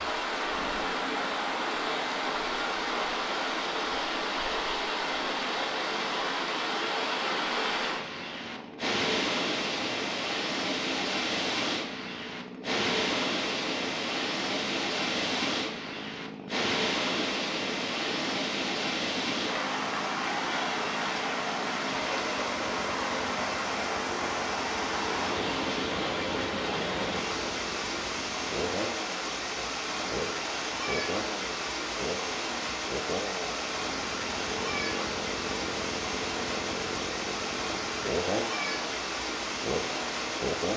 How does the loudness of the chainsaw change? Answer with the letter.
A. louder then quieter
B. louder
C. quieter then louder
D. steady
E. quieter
B.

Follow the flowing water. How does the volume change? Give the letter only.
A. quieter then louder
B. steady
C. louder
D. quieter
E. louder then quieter
B.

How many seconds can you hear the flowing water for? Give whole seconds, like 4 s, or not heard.
41 s.